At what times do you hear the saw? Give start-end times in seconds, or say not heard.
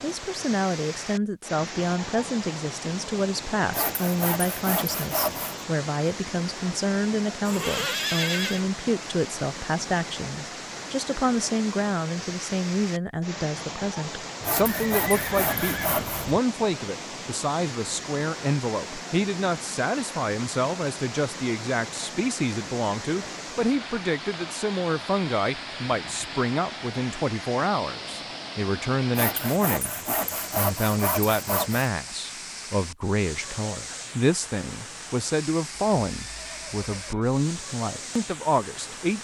3.7-5.7, 14.4-16.3, 29.1-31.9.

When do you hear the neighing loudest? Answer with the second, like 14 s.
8 s.